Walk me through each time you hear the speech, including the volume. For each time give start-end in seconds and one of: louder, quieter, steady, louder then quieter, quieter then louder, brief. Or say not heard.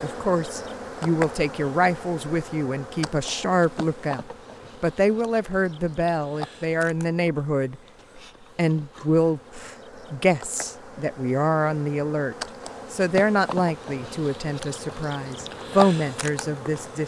0.0-17.0 steady.